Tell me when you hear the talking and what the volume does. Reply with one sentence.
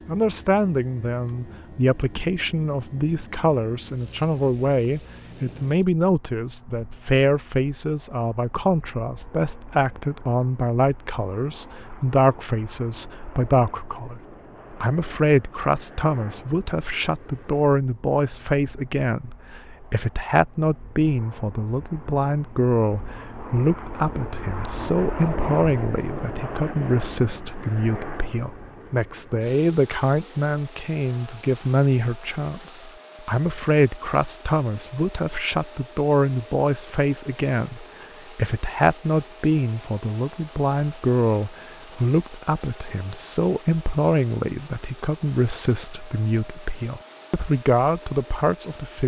You can hear the talking from 0.1 to 49.0 s, at a steady volume.